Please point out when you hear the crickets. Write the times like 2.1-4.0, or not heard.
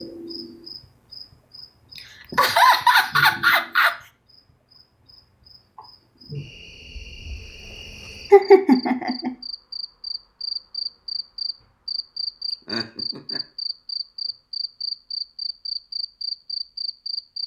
0.0-17.4.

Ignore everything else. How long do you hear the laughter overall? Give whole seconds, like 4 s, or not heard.
4 s.